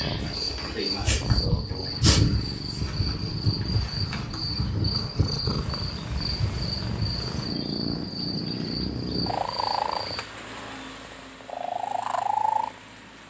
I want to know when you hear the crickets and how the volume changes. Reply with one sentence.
The crickets can be heard from 0.0 to 10.2 s, getting quieter.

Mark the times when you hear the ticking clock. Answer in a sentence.
You can't hear the ticking clock here.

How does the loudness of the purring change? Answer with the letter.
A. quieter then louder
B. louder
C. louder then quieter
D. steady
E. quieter
B.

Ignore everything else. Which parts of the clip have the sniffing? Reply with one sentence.
You can hear the sniffing from 0.2 to 2.2 s.